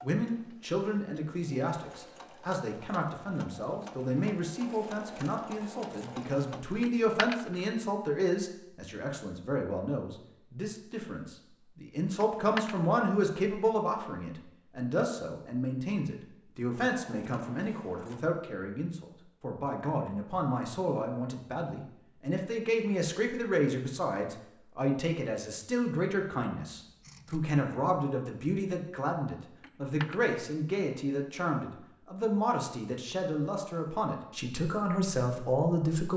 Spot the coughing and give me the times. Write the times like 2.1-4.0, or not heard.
not heard.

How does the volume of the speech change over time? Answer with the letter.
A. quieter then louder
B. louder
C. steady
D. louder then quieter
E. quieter
C.